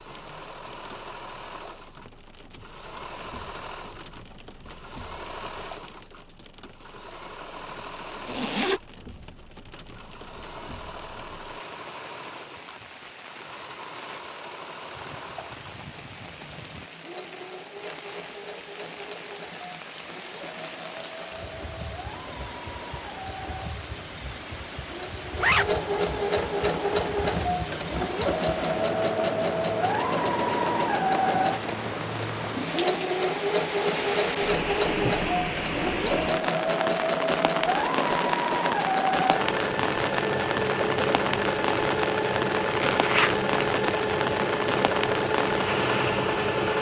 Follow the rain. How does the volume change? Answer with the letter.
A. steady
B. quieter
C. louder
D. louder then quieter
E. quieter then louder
C.